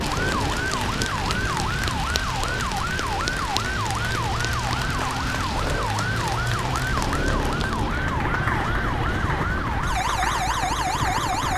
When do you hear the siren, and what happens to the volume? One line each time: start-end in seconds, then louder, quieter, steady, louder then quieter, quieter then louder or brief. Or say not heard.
0.0-11.5 steady.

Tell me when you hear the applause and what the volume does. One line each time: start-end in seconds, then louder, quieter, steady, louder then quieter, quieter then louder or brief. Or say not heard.
0.0-11.5 steady.